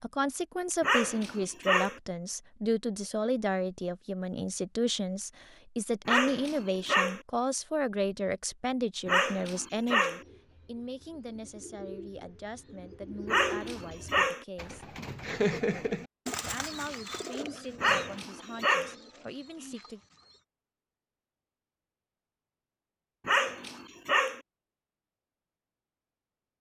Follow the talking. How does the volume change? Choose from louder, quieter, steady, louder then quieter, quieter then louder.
quieter.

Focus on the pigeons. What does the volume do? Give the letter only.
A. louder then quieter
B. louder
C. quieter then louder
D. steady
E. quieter
A.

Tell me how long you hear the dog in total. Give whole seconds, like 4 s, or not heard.
7 s.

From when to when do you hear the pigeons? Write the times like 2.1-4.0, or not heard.
10.2-20.4.